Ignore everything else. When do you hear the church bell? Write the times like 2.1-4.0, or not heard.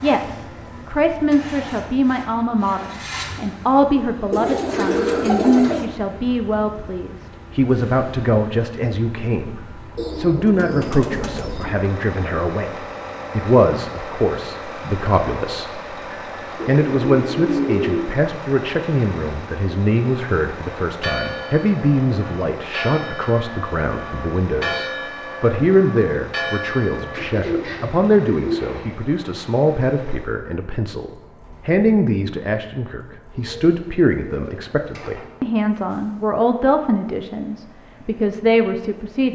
20.9-27.4.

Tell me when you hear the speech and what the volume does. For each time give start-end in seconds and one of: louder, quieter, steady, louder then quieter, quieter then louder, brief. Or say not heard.
0.0-15.8 steady
16.6-39.2 steady.